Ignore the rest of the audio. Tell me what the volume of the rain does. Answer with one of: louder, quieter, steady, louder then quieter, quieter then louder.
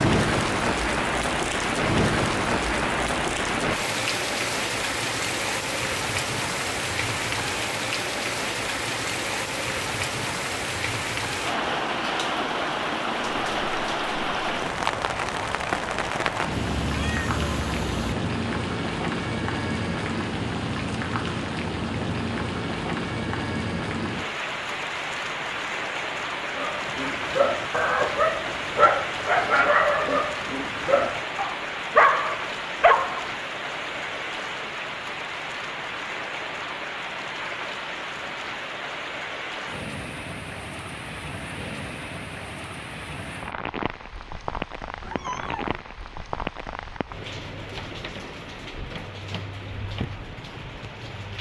quieter.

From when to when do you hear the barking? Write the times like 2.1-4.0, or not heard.
26.5-33.3.